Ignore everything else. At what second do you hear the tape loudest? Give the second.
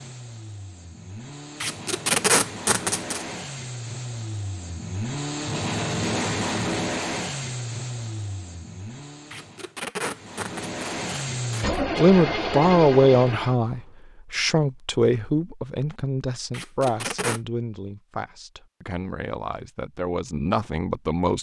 2 s.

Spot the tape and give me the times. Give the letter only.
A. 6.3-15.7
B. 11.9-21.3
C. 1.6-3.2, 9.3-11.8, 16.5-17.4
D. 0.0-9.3
C.